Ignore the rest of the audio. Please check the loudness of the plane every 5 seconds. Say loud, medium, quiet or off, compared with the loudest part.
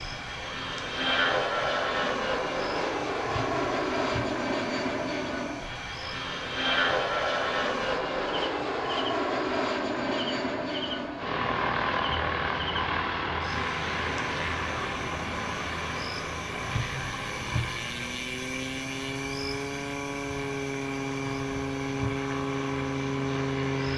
loud, loud, loud, medium, loud.